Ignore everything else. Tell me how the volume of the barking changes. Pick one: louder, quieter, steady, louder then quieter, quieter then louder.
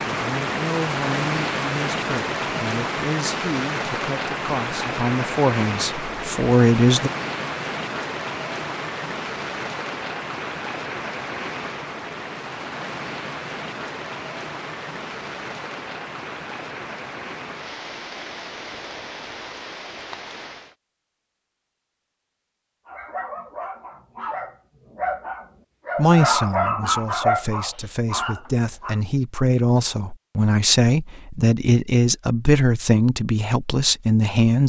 louder then quieter.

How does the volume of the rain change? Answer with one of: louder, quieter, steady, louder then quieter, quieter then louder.
quieter.